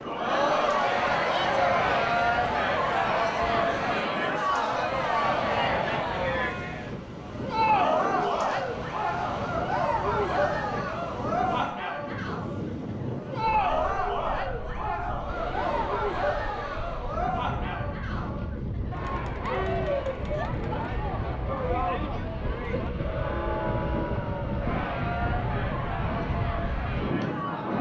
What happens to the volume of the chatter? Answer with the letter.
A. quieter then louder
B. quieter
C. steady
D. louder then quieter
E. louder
B.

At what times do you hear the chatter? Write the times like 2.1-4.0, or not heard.
0.1-27.7.